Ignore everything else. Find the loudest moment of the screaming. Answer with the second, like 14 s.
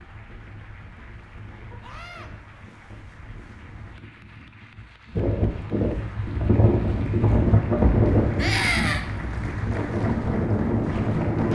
9 s.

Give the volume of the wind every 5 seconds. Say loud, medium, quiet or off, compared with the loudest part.
quiet, loud, loud.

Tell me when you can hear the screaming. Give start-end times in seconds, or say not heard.
1.8-2.3, 8.3-9.0.